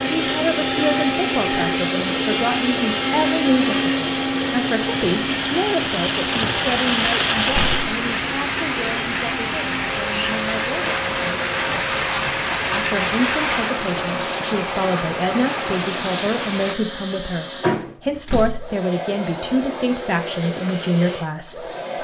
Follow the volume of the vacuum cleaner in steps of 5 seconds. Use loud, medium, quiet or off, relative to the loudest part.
loud, medium, medium, medium, medium.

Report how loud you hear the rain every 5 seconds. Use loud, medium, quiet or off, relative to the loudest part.
medium, loud, loud, loud, off.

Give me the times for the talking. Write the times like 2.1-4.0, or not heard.
0.2-11.1, 12.7-21.9.